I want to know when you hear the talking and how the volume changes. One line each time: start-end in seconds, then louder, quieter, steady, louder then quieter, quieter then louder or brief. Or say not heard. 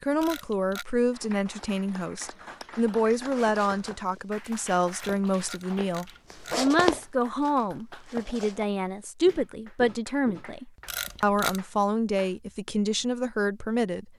0.0-14.1 steady.